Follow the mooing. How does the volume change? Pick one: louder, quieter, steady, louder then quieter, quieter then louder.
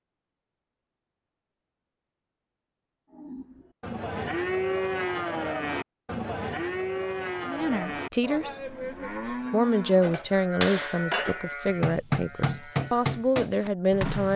quieter.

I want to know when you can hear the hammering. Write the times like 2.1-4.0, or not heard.
10.0-14.3.